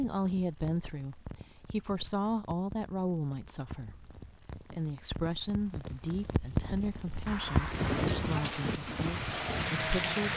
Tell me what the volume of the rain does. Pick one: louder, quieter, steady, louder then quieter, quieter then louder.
louder.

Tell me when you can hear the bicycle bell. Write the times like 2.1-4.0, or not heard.
7.2-8.3.